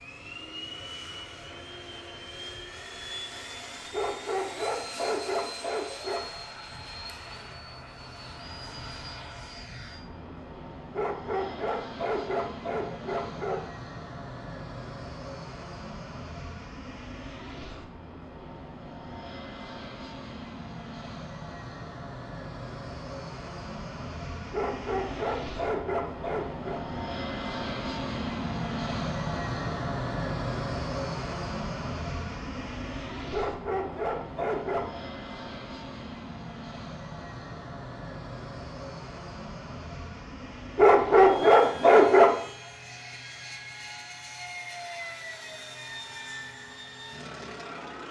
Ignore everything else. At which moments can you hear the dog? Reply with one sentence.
The dog can be heard from 3.9 to 6.2 s, from 10.9 to 13.7 s, from 24.5 to 26.8 s, from 33.3 to 35.1 s and from 40.8 to 42.4 s.